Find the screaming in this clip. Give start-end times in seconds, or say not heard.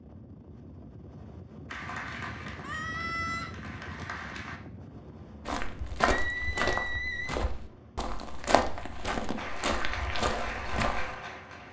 2.6-3.5, 6.0-7.3.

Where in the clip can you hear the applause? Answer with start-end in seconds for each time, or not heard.
1.6-4.6, 9.3-11.6.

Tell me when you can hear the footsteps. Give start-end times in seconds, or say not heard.
5.5-11.2.